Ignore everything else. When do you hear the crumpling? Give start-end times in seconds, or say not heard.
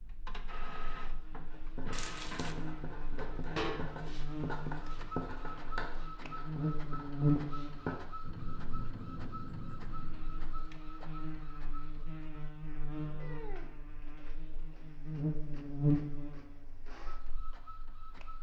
1.9-2.5.